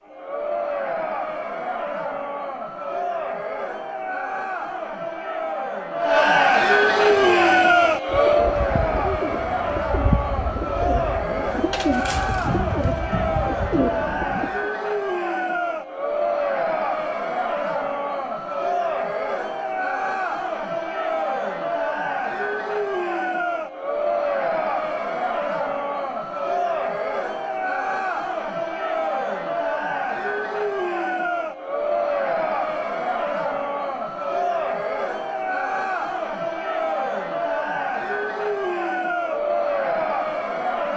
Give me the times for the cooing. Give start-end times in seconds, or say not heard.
7.0-14.7.